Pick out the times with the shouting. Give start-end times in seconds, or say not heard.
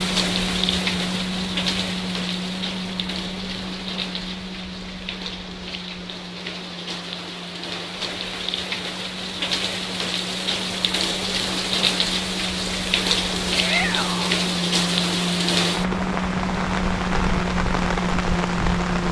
13.5-14.4.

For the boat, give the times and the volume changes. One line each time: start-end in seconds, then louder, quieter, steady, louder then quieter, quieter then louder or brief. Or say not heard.
0.0-19.0 quieter then louder.